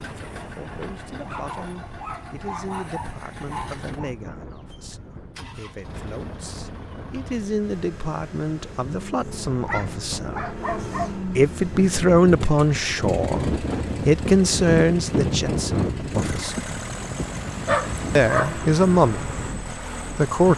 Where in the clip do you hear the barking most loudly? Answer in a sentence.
The volume of the barking peaks at 18 seconds.